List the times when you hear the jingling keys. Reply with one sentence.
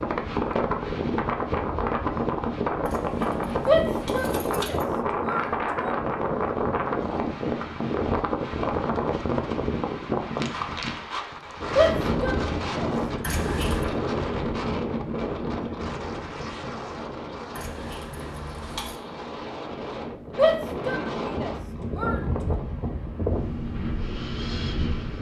The jingling keys can be heard from 2.9 to 4.8 s, from 13.2 to 13.8 s and from 17.6 to 19.0 s.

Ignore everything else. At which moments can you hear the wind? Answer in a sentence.
You can hear the wind from 0.0 to 25.1 s.